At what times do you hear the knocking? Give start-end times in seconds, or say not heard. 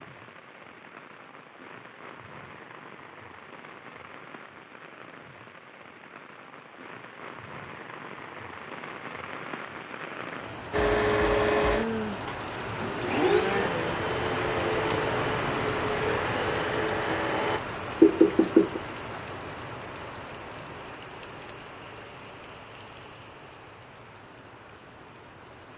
18.0-18.8.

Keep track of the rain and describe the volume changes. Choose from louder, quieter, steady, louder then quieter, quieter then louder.
louder then quieter.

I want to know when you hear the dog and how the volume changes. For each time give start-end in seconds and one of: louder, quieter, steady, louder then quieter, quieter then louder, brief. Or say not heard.
not heard.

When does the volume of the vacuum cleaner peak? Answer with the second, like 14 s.
11 s.